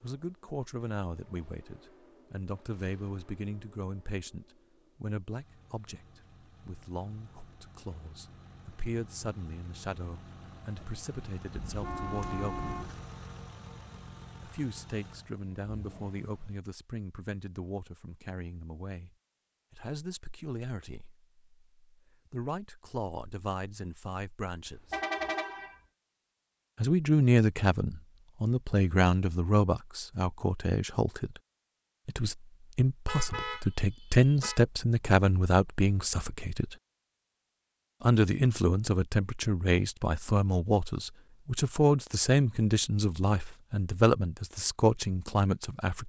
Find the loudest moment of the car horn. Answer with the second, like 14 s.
25 s.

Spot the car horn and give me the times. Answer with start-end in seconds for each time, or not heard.
11.5-13.0, 24.6-25.8, 33.0-34.6.